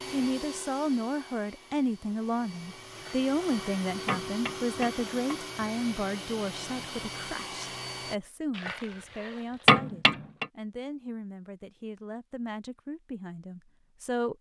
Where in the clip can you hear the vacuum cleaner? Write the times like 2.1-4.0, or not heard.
0.0-8.2.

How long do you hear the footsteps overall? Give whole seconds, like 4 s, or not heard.
not heard.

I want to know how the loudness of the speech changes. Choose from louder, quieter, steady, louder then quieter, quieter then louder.
quieter.